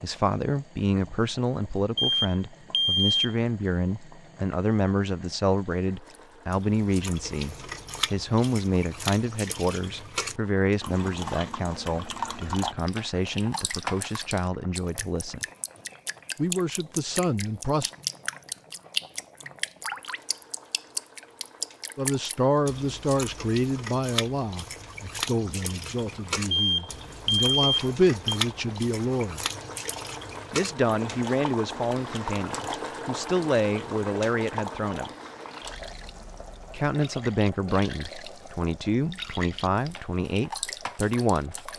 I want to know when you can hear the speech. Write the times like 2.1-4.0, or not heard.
0.0-15.4, 16.4-17.9, 21.9-29.4, 30.5-35.1, 36.7-41.7.